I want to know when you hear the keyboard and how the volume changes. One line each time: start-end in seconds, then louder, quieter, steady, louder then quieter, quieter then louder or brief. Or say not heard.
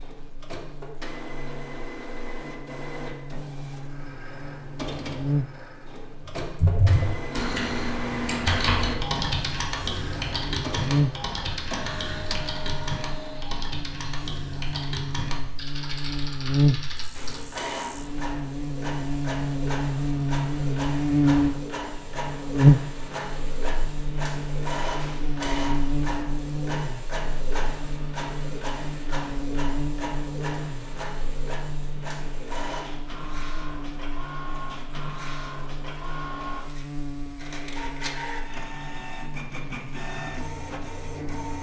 6.5-17.6 quieter.